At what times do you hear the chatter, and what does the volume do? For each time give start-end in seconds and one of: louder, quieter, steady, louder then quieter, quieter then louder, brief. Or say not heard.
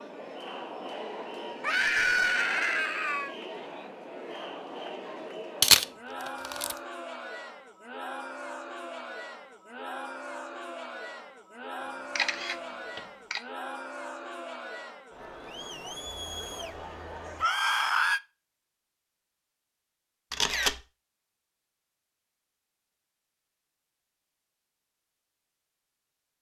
0.0-17.4 steady.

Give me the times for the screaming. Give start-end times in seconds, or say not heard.
1.6-3.4, 17.4-18.2.